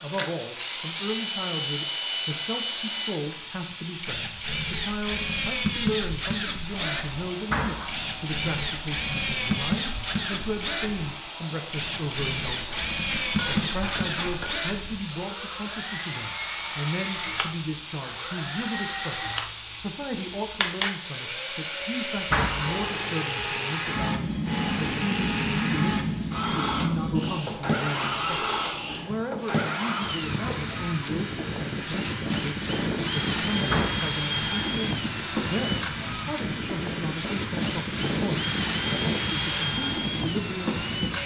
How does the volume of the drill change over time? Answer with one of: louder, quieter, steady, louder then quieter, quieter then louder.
steady.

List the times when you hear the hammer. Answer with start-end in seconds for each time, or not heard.
12.7-14.6.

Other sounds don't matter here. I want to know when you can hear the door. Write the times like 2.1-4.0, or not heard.
7.5-8.1, 22.3-22.8, 33.6-34.1.